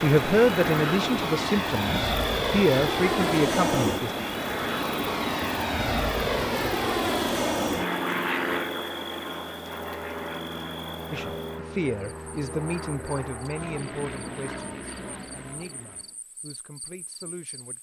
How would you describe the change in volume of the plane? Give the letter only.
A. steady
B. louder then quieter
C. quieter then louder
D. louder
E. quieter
E.